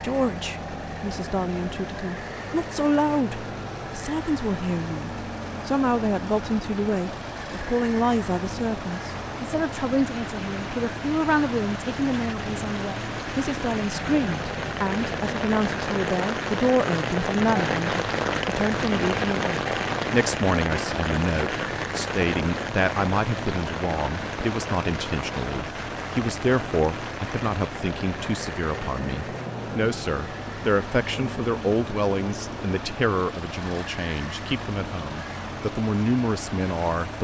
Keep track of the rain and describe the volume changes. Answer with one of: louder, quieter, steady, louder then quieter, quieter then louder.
louder then quieter.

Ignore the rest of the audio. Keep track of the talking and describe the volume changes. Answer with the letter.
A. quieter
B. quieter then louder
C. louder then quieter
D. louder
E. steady
E.